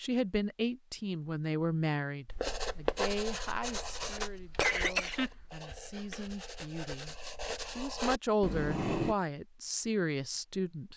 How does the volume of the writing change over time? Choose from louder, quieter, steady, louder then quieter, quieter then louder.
quieter then louder.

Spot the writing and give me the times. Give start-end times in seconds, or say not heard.
2.2-9.2.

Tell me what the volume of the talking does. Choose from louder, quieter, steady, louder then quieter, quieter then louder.
quieter then louder.